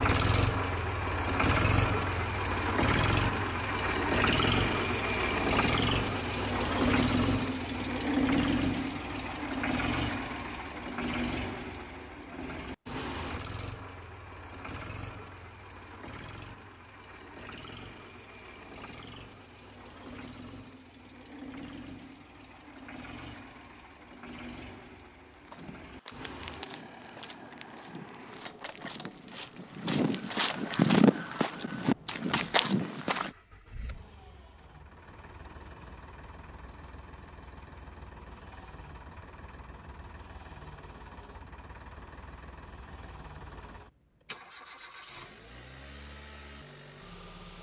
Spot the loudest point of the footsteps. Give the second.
31 s.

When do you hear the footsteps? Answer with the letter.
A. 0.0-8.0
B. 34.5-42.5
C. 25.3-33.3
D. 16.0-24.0
C.